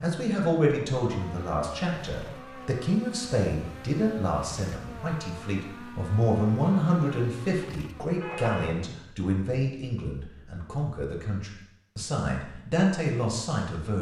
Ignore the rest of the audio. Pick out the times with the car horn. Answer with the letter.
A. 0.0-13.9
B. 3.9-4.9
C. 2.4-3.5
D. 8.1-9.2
D.